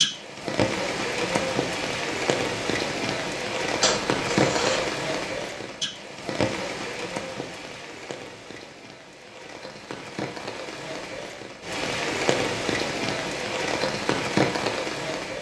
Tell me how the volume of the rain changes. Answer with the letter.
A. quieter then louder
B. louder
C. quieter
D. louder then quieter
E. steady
A.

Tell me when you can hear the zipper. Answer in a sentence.
You can hear the zipper from 3.8 to 4.9 s.